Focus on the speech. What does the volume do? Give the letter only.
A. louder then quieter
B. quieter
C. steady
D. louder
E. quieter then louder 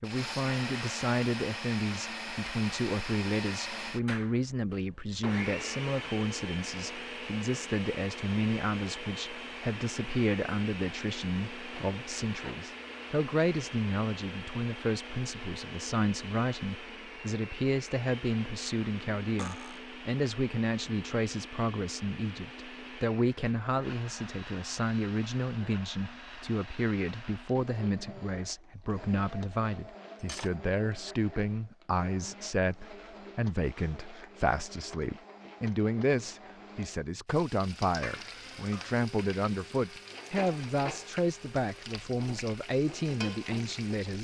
C.